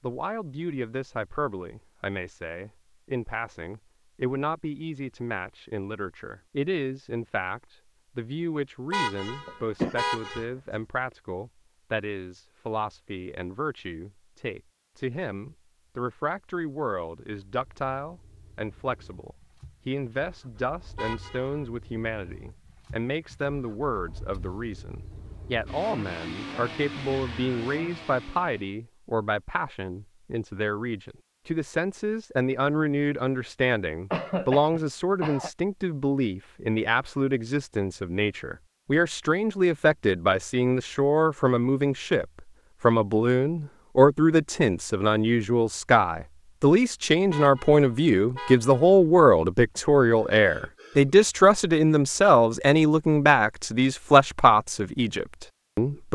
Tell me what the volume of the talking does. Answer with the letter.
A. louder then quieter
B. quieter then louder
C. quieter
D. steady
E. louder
E.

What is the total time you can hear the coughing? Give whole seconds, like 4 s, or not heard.
4 s.